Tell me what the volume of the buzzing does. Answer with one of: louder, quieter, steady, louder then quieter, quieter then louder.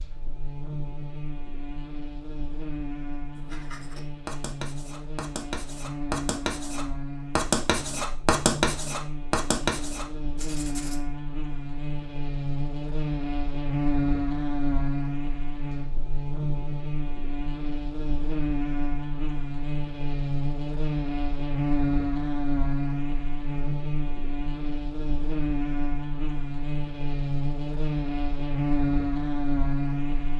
louder.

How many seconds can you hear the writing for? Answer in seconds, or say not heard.
8 s.